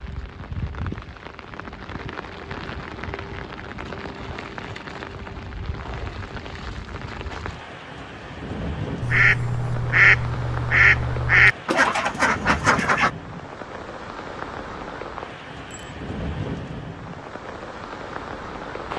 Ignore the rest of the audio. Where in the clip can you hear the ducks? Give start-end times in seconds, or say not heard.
9.0-13.1.